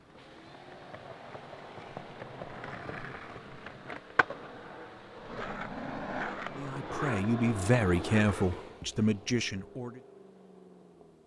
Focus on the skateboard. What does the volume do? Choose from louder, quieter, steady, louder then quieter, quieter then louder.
louder.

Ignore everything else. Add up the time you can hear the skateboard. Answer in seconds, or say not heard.
9 s.